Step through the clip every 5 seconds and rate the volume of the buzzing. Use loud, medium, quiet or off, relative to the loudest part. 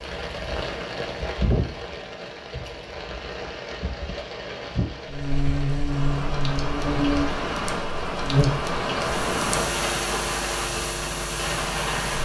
off, loud, medium.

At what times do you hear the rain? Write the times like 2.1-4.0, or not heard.
0.0-12.1.